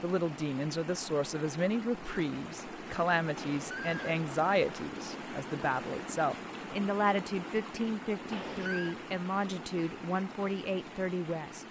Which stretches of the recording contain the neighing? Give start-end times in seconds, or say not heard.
3.4-4.2, 8.3-8.9.